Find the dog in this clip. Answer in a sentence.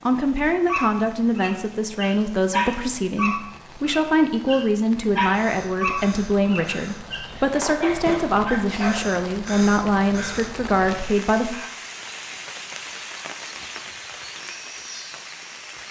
You can hear the dog from 0.2 to 9.1 s.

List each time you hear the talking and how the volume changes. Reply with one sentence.
The talking can be heard from 0.1 to 11.6 s, at a steady volume.